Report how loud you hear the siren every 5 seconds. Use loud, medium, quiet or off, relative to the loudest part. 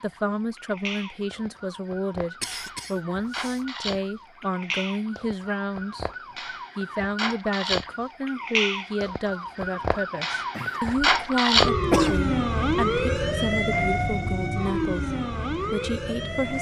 quiet, medium, loud, medium.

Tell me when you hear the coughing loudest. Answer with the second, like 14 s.
12 s.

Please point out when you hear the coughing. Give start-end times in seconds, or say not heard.
2.4-3.6, 10.6-11.1, 11.9-12.3.